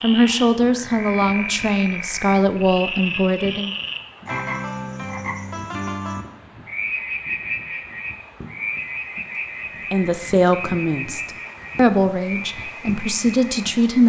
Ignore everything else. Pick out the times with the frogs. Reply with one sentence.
You can hear the frogs from 0.0 to 14.0 s.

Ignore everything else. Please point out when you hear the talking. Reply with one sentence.
You can hear the talking from 0.0 to 3.7 s and from 9.9 to 14.0 s.